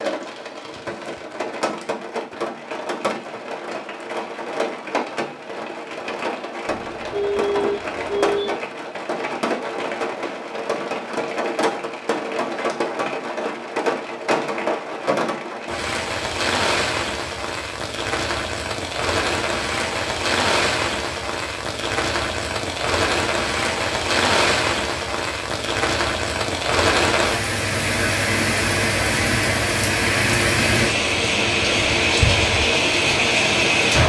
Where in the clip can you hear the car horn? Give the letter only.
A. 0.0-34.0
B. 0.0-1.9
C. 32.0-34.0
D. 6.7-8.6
D.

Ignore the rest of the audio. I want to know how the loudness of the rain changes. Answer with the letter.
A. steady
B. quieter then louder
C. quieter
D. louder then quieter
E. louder
E.